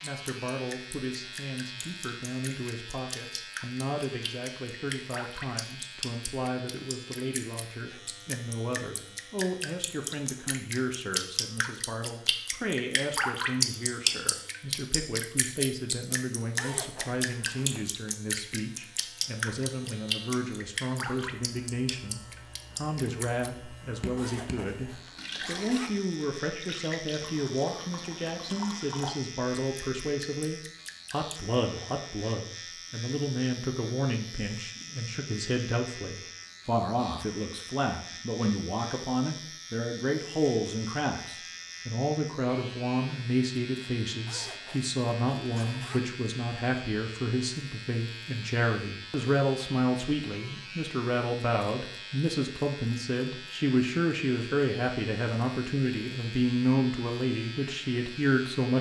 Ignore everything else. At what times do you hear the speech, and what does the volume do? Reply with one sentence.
The speech can be heard from 0.0 to 58.7 s, getting louder.